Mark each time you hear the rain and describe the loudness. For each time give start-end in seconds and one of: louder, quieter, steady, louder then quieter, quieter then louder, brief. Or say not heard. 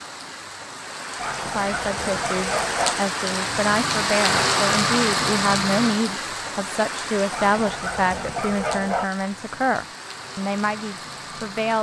0.0-11.7 louder then quieter.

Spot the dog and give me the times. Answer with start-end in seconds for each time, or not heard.
1.1-3.0, 7.3-9.1.